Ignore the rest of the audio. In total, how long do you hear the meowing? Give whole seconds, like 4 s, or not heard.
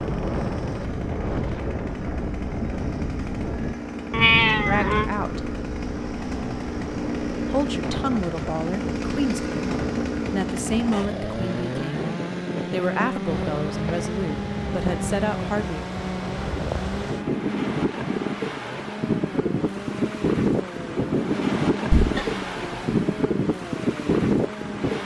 2 s.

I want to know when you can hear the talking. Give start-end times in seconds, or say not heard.
4.7-5.5, 7.5-12.1, 12.7-15.8.